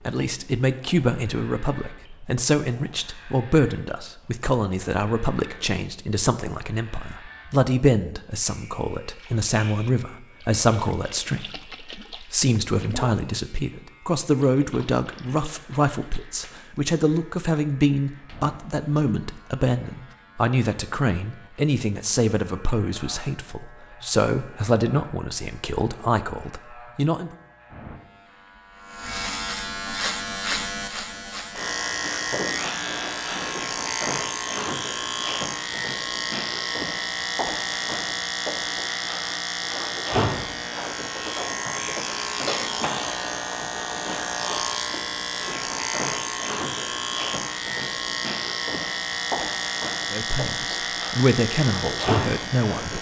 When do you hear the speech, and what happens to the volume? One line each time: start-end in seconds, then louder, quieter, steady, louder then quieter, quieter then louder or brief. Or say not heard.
0.1-27.4 steady
50.1-52.9 brief.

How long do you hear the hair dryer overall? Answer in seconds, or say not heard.
not heard.